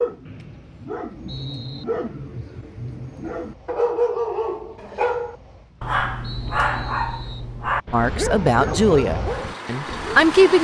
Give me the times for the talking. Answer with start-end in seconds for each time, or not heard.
7.9-10.5.